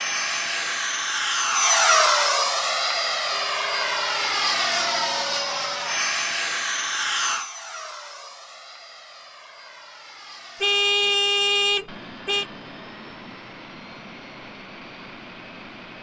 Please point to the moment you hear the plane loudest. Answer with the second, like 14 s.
2 s.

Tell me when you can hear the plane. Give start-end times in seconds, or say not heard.
0.0-15.9.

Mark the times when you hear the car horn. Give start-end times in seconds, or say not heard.
3.3-4.2, 10.6-12.4.